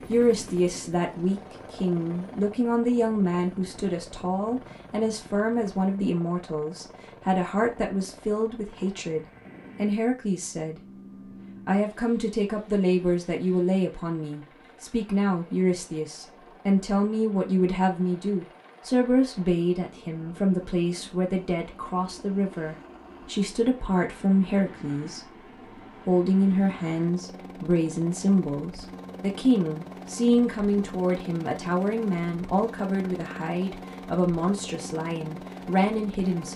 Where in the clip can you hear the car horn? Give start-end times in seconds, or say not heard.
not heard.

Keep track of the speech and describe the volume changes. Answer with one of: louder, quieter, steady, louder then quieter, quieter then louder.
steady.